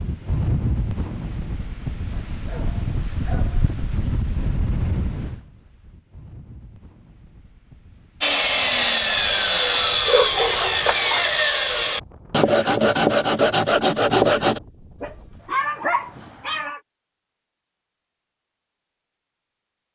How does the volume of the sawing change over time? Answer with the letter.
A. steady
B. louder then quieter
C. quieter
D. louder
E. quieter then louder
A.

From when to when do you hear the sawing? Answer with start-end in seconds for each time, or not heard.
8.2-14.6.